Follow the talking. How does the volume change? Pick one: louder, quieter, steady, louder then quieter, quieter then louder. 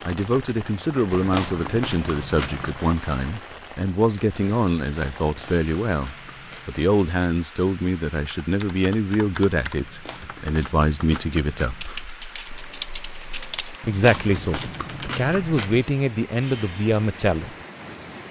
steady.